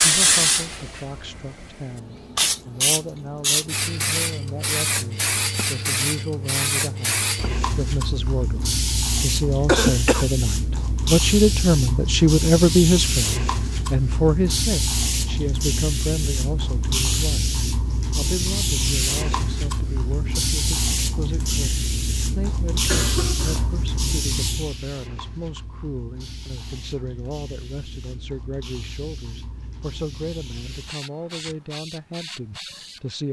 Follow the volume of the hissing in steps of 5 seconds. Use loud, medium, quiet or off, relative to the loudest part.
loud, loud, loud, loud, loud, quiet, quiet.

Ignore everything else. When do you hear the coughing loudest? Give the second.
10 s.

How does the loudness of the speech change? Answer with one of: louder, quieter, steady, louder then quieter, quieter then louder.
louder then quieter.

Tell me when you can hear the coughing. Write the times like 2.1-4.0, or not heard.
9.7-10.2, 22.8-23.9.